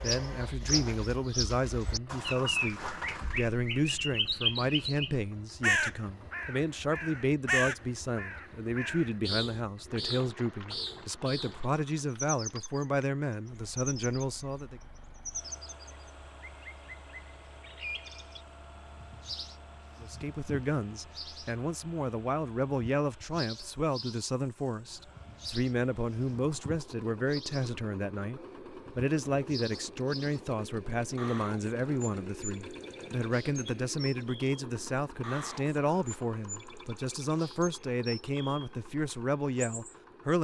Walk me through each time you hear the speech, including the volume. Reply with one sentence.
The speech can be heard from 0.0 to 14.8 s, at a steady volume; and from 20.0 to 40.4 s, at a steady volume.